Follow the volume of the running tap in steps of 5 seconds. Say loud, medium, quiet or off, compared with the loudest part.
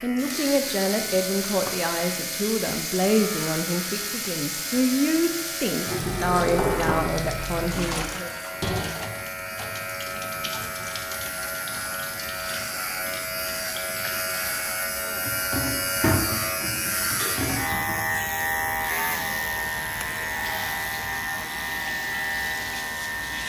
loud, loud, medium, loud, medium.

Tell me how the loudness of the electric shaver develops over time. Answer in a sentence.
The loudness of the electric shaver goes up.